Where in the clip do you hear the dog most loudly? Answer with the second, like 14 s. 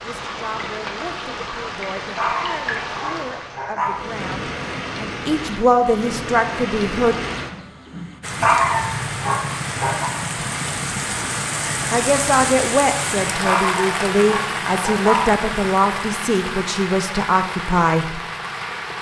9 s.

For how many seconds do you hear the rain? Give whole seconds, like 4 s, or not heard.
19 s.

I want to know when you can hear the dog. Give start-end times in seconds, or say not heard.
2.1-4.0, 8.4-10.1, 13.4-15.3.